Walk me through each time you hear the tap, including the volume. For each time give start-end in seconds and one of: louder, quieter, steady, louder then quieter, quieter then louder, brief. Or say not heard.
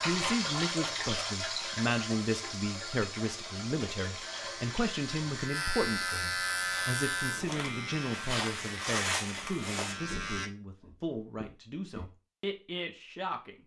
0.0-5.5 quieter.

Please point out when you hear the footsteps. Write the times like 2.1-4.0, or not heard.
6.5-12.1.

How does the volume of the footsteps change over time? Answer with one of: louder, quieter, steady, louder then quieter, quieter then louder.
louder then quieter.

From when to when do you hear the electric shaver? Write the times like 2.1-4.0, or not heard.
4.3-10.5.